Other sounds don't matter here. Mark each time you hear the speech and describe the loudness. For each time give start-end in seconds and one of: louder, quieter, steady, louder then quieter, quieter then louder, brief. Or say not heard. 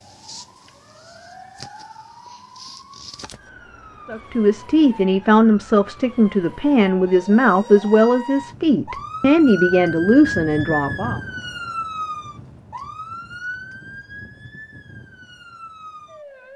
4.0-11.2 steady.